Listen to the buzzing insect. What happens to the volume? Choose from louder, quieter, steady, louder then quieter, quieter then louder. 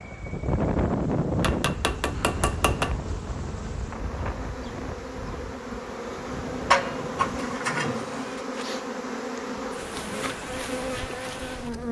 louder.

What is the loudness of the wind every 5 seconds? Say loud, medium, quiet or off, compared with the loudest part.
loud, medium, off.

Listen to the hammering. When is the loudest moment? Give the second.
7 s.